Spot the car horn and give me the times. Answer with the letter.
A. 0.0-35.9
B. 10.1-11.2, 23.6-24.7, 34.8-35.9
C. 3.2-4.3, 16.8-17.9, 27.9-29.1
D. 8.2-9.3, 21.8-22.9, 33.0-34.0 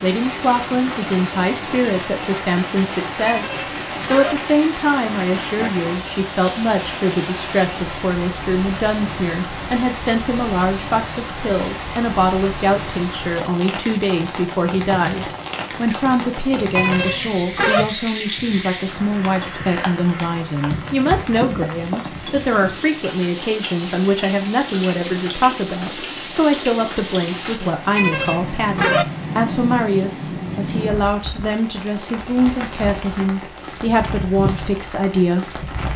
C.